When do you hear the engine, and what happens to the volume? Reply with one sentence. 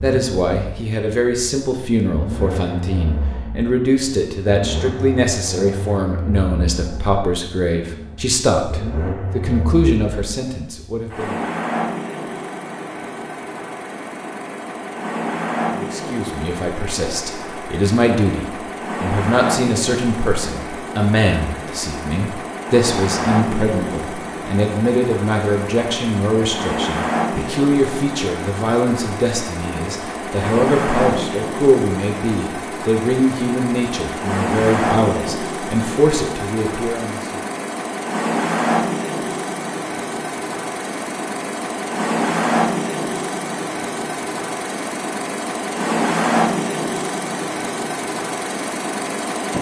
The engine can be heard from 0.0 to 49.5 s, getting louder.